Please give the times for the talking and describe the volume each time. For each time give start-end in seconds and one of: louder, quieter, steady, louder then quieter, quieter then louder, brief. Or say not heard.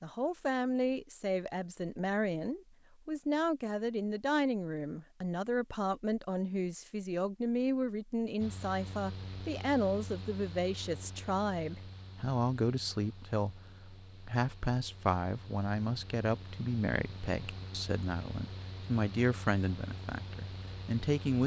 0.0-21.4 steady.